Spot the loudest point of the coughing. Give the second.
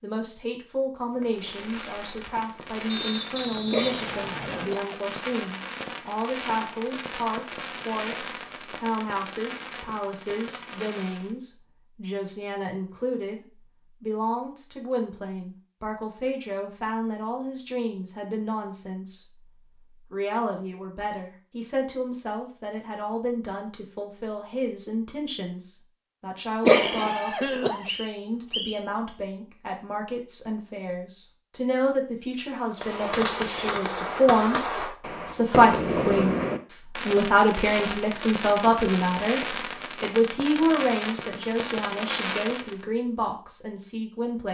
27 s.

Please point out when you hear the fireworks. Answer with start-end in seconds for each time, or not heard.
1.1-11.3, 32.6-42.9.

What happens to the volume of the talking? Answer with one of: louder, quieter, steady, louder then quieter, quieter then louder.
louder.